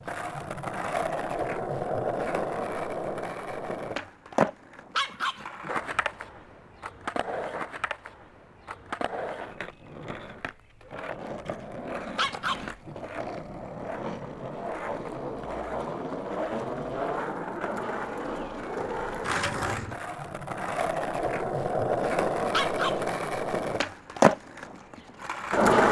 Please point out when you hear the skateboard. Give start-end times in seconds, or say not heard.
0.0-25.8.